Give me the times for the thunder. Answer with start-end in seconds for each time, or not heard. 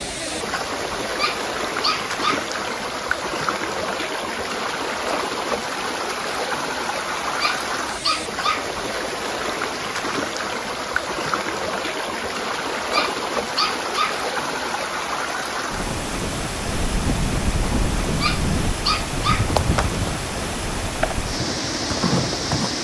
not heard.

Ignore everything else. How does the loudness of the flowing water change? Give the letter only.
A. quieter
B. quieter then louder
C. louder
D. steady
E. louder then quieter
D.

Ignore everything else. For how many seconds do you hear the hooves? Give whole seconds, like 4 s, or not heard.
6 s.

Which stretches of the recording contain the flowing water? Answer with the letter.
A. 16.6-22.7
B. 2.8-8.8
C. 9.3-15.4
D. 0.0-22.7
D.